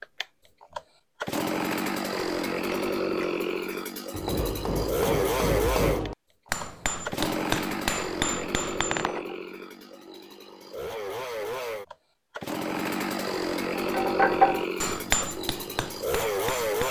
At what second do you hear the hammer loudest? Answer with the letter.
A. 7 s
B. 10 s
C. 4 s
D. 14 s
D.